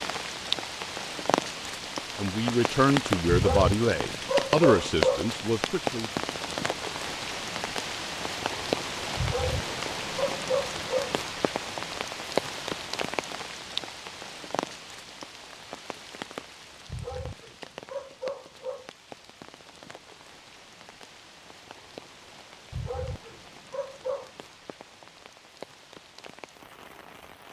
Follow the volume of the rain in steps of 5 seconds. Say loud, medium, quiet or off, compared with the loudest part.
loud, loud, loud, quiet, quiet, quiet.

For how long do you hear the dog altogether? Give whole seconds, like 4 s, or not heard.
8 s.